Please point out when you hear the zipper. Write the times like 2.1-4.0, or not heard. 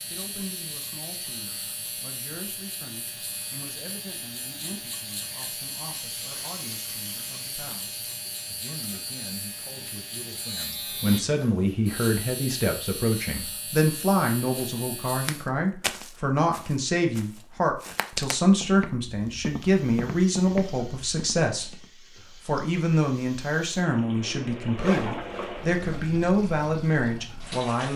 24.8-26.1.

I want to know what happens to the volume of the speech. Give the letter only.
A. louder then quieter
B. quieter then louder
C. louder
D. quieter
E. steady
C.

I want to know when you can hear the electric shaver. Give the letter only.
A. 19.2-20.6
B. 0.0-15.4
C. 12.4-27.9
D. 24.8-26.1
B.